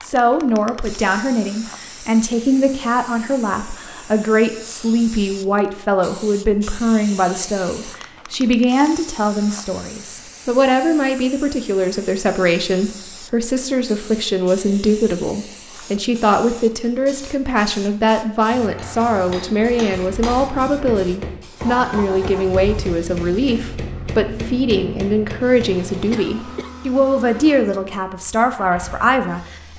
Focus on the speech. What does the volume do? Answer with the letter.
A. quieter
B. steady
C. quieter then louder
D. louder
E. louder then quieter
B.